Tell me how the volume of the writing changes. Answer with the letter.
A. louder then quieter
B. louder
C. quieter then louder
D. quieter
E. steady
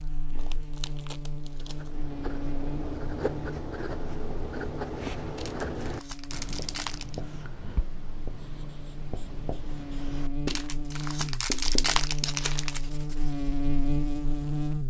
D.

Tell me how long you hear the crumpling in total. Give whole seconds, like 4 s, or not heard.
6 s.